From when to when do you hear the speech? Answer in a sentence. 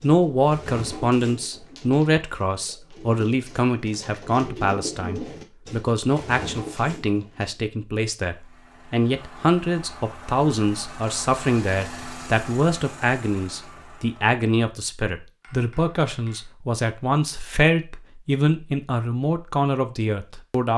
The speech can be heard from 0.0 to 20.7 s.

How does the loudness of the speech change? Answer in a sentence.
The loudness of the speech stays about the same.